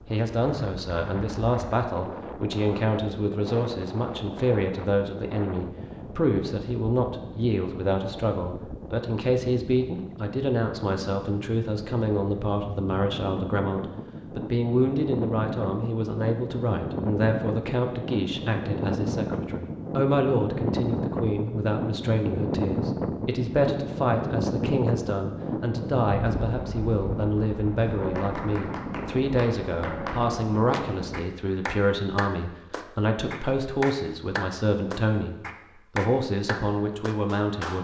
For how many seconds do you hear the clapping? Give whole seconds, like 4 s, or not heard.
10 s.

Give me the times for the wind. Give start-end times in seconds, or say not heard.
0.0-31.2.